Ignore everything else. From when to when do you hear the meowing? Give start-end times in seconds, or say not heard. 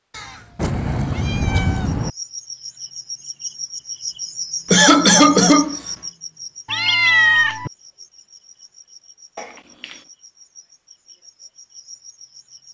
0.6-2.1, 6.7-7.7.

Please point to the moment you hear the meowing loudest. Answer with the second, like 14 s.
7 s.